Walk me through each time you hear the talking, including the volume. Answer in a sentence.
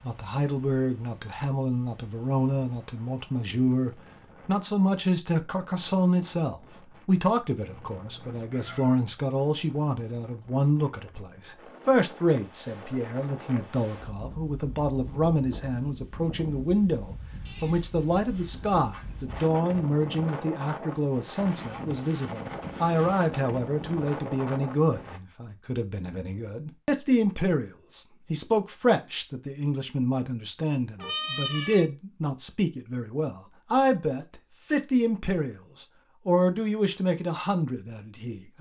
You can hear the talking from 0.1 to 38.5 s, at a steady volume.